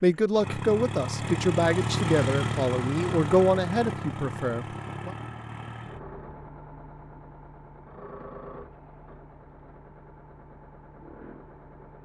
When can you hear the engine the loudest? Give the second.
2 s.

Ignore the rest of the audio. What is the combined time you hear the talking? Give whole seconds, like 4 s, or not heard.
5 s.